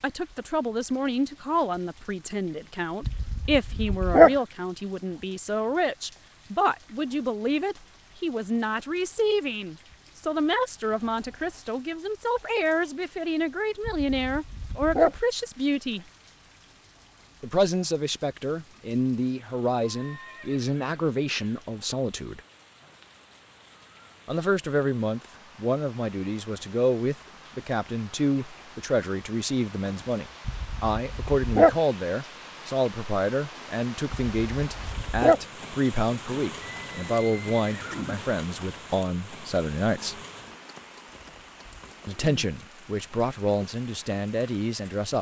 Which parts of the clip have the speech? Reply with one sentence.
You can hear the speech from 0.0 to 16.1 s, from 17.4 to 22.4 s, from 24.2 to 40.2 s and from 42.0 to 45.1 s.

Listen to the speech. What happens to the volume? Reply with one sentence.
The loudness of the speech stays about the same.